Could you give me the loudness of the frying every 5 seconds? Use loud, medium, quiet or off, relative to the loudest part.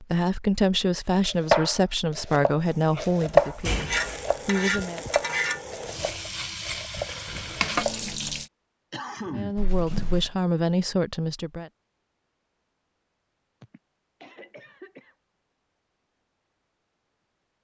loud, loud, off, off.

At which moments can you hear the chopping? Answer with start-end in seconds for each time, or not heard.
1.2-8.1.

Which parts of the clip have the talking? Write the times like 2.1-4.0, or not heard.
0.0-5.0, 9.3-11.7.